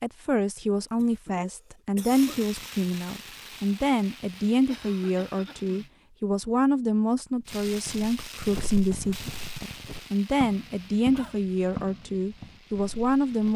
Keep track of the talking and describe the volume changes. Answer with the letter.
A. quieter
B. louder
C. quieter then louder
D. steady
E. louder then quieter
D.